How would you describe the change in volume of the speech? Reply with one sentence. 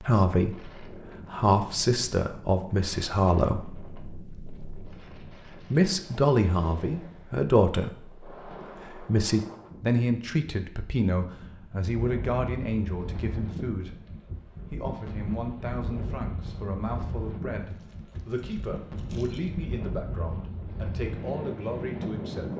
The loudness of the speech goes down.